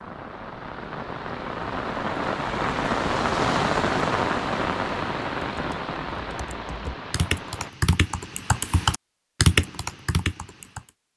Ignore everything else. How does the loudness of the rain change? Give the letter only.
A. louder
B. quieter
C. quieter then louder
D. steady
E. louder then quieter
E.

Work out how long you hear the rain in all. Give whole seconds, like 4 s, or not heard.
8 s.